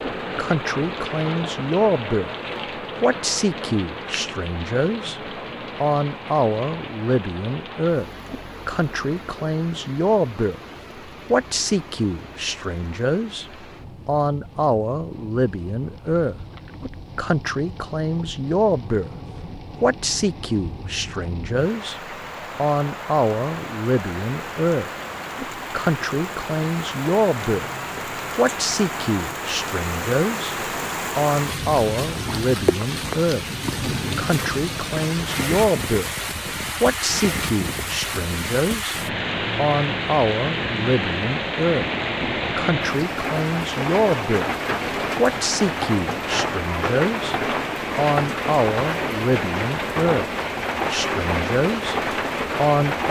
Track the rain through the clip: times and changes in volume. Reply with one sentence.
You can hear the rain from 0.0 to 53.0 s, getting quieter then louder.